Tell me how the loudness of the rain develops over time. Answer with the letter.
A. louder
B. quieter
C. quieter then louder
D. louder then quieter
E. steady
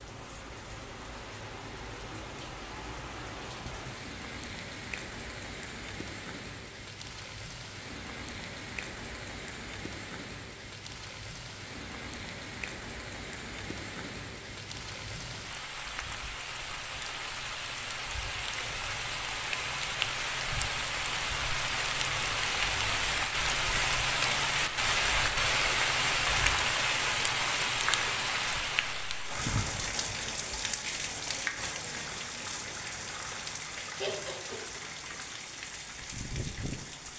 D.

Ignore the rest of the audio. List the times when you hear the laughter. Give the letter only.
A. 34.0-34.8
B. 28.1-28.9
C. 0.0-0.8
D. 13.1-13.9
A.